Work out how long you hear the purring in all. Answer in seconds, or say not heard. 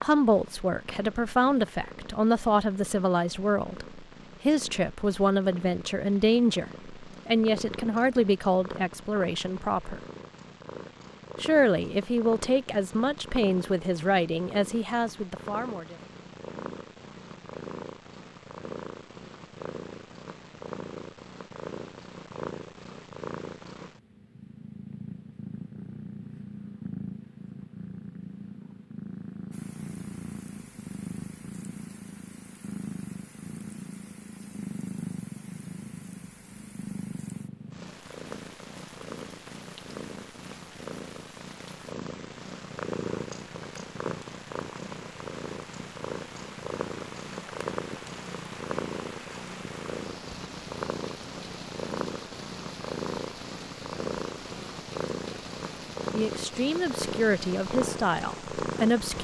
59 s.